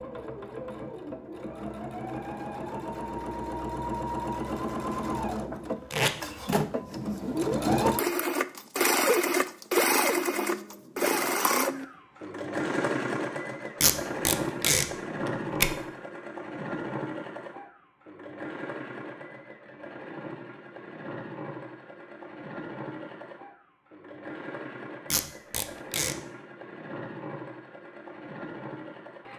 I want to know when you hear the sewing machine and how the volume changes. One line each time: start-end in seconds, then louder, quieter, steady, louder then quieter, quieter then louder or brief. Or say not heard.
0.0-29.3 louder then quieter.